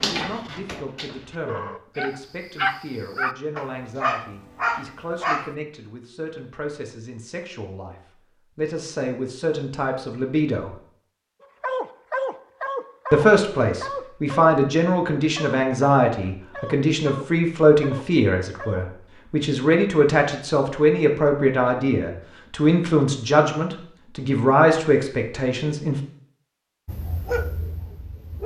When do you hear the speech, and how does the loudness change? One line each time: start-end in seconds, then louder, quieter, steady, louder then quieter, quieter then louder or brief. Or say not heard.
0.0-8.0 steady
8.6-10.8 brief
13.1-26.0 steady.